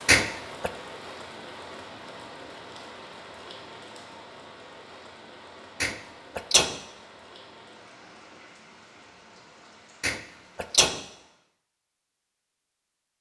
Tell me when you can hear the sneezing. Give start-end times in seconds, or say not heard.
0.1-0.7, 5.8-6.8, 10.0-11.0.